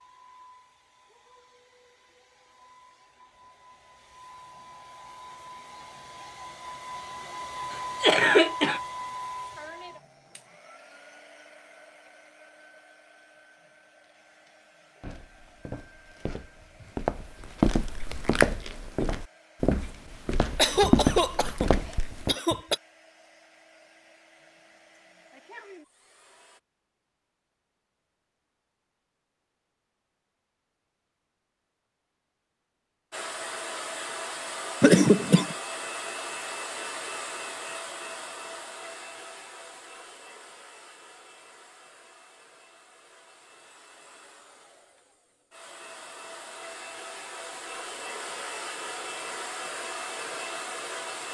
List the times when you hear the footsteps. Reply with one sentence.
You can hear the footsteps from 15.0 to 22.4 s.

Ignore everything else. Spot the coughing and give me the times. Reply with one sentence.
You can hear the coughing from 8.0 to 8.8 s, from 20.2 to 22.8 s and from 34.8 to 35.5 s.